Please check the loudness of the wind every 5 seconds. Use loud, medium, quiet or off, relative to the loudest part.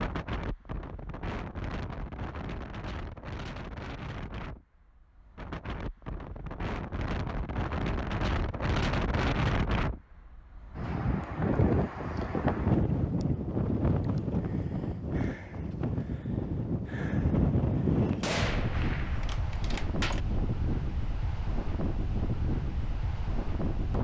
medium, loud, loud, loud, medium.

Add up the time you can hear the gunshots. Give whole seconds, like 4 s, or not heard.
2 s.